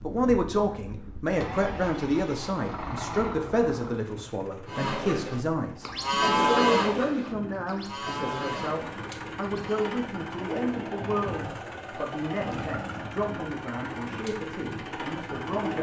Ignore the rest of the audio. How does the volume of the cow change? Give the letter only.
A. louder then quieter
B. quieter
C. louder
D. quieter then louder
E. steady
A.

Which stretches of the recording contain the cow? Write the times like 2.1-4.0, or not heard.
4.7-9.9.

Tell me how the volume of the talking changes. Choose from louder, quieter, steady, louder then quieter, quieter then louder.
quieter.